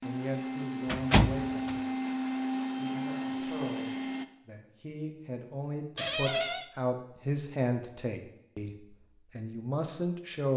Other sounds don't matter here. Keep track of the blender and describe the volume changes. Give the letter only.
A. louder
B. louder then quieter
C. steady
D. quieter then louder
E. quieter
C.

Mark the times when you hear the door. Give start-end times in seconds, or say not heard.
0.8-1.8, 6.0-6.7.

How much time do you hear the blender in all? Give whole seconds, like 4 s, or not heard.
4 s.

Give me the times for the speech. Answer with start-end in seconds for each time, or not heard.
0.0-1.8, 2.7-10.5.